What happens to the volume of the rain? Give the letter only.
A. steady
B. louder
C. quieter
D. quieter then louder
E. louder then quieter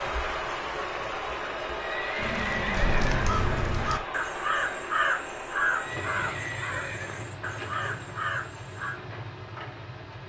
C.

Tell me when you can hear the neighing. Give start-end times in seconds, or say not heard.
1.8-3.1, 5.7-7.3.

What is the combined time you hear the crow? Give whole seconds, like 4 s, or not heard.
7 s.